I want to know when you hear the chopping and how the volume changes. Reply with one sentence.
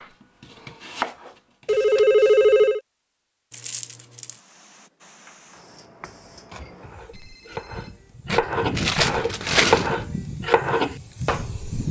You can hear the chopping briefly from 0.0 to 1.9 s; and from 5.2 to 11.8 s, getting louder.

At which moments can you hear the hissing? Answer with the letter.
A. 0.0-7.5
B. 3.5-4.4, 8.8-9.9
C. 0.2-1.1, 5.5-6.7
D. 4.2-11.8
D.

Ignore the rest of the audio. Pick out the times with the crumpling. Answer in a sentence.
You can hear the crumpling from 3.5 to 4.4 s and from 8.8 to 9.9 s.